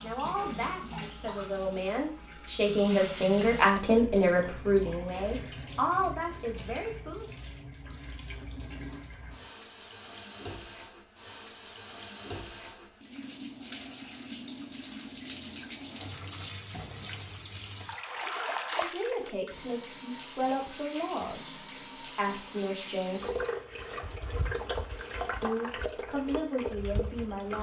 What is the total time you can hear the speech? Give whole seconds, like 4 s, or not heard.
14 s.